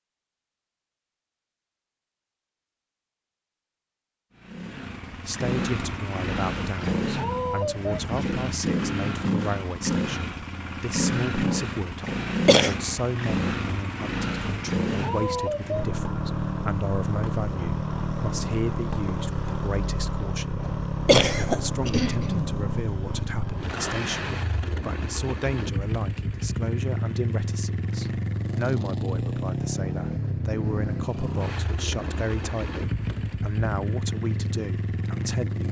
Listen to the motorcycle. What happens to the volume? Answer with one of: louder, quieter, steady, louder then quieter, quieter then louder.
steady.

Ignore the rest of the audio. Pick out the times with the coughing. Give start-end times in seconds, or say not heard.
12.0-12.8, 21.1-22.6.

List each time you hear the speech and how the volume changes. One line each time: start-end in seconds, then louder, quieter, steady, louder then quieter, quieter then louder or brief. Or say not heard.
5.2-35.6 steady.